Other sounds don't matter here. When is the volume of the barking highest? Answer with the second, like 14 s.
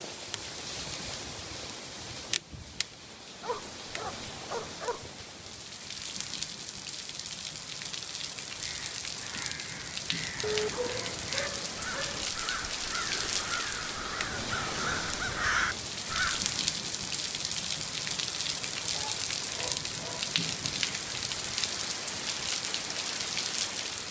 11 s.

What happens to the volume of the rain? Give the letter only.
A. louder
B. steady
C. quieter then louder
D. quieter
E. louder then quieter
A.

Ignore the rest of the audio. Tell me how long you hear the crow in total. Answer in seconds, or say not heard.
8 s.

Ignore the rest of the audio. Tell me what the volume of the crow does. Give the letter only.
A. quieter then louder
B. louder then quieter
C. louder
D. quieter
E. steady
C.